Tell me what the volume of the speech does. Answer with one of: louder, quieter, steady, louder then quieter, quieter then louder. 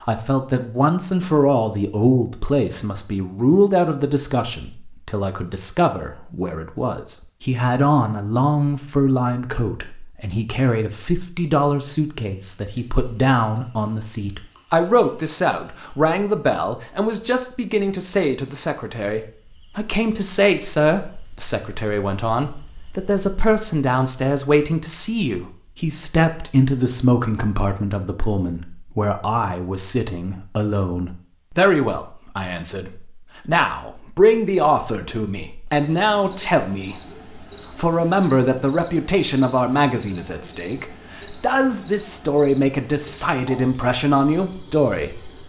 steady.